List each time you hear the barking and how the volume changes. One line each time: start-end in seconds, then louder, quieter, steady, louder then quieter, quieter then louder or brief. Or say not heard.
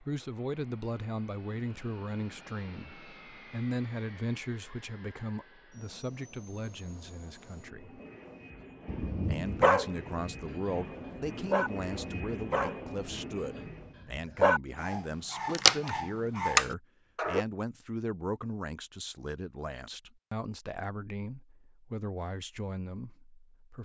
8.8-17.4 quieter then louder.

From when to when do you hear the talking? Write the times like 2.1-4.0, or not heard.
0.0-8.0, 9.2-23.8.